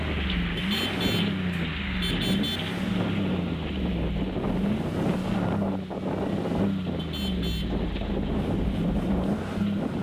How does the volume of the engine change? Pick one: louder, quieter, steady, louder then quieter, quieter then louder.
steady.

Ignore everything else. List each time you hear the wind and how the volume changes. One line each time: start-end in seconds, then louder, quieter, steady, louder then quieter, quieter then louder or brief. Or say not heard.
0.0-9.9 steady.